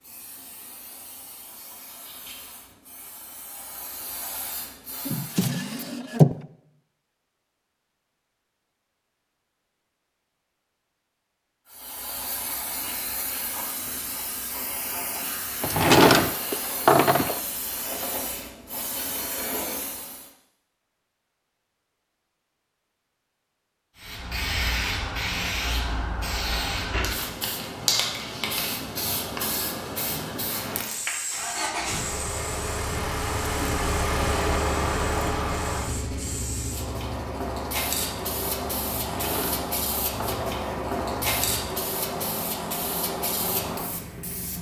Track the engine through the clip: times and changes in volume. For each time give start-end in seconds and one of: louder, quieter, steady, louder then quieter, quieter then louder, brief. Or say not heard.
31.2-44.5 quieter.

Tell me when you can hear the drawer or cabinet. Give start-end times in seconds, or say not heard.
5.0-6.3, 15.6-17.4, 39.0-40.6.